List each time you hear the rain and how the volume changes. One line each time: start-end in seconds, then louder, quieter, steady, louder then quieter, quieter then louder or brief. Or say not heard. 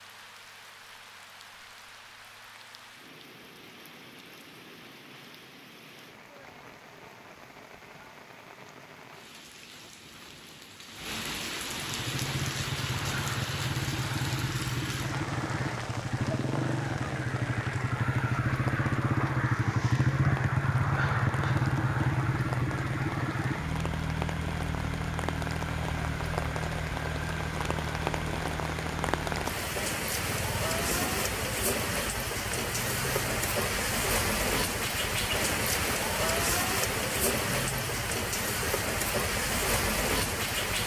0.0-40.8 louder.